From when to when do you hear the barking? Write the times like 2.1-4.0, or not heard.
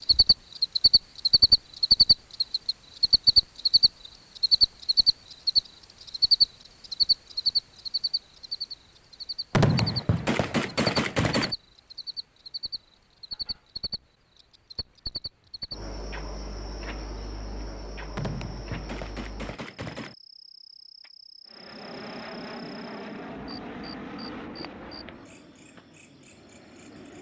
not heard.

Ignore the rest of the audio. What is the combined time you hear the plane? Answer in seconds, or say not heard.
6 s.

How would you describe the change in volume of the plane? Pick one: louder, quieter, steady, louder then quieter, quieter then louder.
quieter.